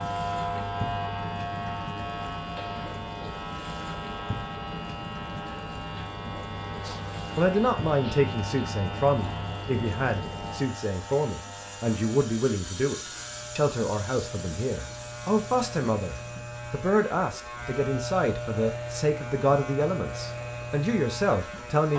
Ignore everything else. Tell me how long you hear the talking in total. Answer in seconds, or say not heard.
15 s.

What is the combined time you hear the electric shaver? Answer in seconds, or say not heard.
22 s.